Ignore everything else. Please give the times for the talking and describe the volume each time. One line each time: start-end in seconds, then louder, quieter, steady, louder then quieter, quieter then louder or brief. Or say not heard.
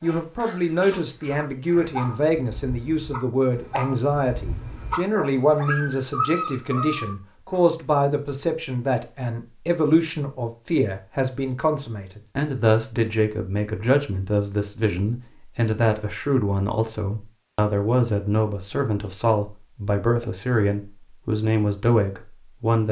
0.0-22.8 steady.